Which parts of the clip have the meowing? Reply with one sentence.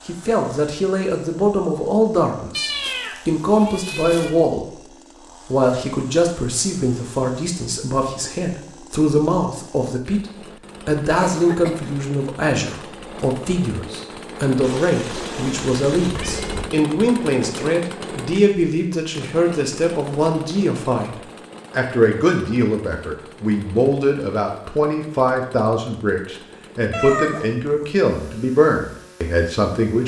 You can hear the meowing from 2.5 to 4.3 s, from 14.6 to 16.6 s and from 26.9 to 27.9 s.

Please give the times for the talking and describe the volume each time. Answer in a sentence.
The talking can be heard from 0.1 to 30.0 s, at a steady volume.